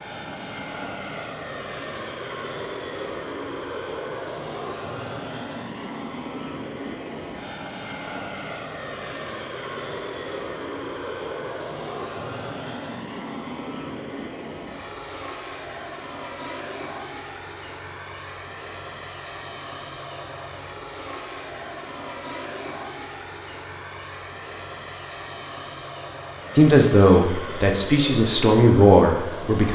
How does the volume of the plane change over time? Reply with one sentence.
The volume of the plane stays about the same.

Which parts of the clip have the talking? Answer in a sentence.
You can hear the talking from 26.6 to 29.7 s.